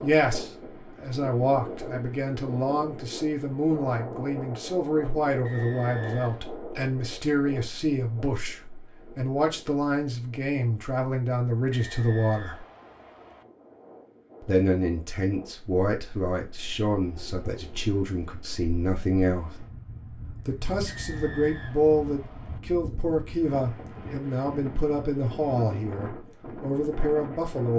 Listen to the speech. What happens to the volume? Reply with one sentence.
The volume of the speech stays about the same.